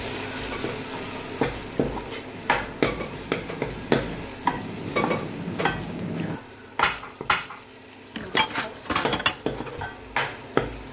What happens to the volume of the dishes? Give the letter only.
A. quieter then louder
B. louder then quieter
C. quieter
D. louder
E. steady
D.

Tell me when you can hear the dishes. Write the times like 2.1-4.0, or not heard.
0.3-9.8.